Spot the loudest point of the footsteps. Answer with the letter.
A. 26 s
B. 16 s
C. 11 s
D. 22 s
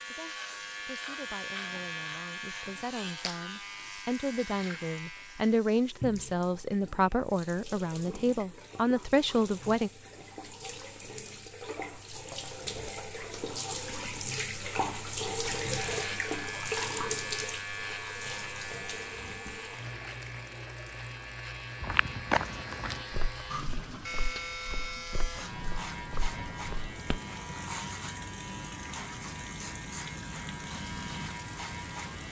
D.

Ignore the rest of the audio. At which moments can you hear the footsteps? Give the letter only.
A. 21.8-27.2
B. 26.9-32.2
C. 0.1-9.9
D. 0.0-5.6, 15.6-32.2
A.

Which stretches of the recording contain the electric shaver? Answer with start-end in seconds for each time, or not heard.
0.0-5.6, 15.6-32.2.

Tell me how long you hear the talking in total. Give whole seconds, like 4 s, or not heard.
10 s.